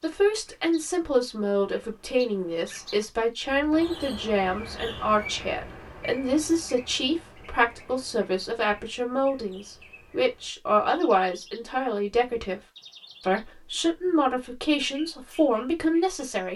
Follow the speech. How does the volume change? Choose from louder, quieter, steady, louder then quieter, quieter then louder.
steady.